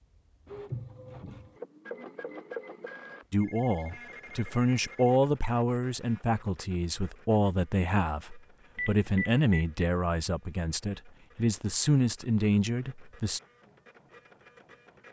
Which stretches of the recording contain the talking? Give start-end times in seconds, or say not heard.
3.3-13.4.